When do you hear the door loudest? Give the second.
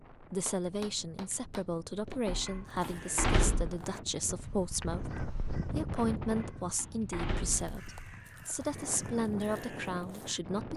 3 s.